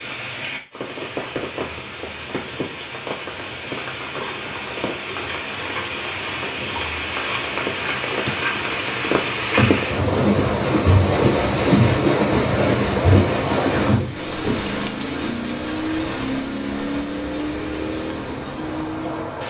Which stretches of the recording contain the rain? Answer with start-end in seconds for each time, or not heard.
0.0-19.4.